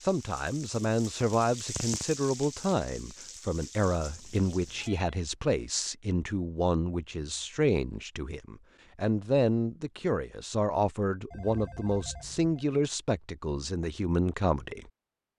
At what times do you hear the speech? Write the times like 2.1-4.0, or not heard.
0.0-14.9.